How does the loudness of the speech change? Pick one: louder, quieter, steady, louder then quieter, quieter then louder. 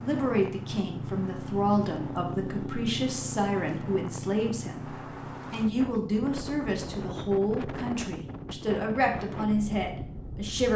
steady.